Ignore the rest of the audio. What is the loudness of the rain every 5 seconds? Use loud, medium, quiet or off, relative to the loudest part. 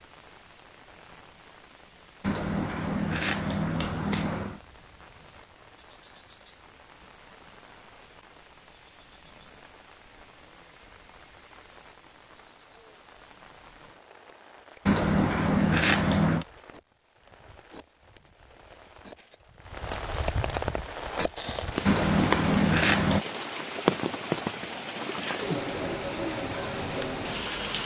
quiet, quiet, quiet, quiet, loud, loud.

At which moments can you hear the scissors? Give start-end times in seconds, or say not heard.
2.2-4.6, 14.8-16.4, 21.9-23.2.